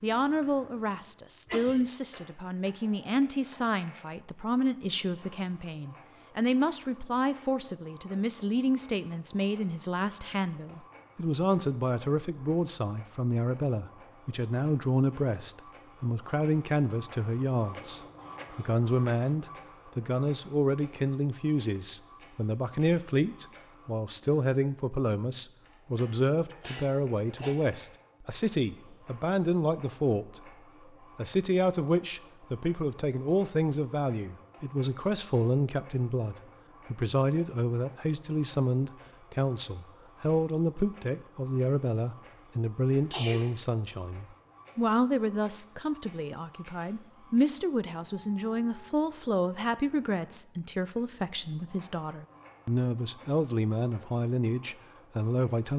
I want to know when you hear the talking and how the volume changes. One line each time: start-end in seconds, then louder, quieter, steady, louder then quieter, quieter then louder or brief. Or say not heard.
0.0-30.4 steady
31.1-55.7 steady.